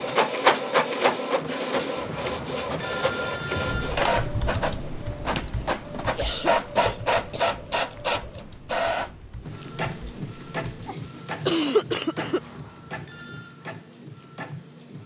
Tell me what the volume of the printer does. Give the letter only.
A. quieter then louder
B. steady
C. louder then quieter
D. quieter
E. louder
D.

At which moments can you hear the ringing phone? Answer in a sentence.
You can hear the ringing phone from 1.9 to 4.0 s and from 12.2 to 13.6 s.